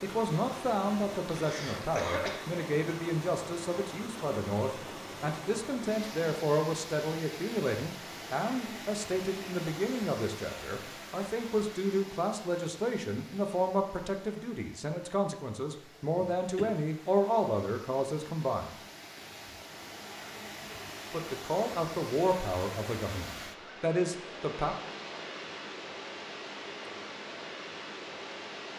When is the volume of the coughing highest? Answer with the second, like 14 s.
2 s.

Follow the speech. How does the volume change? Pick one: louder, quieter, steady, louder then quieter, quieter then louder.
steady.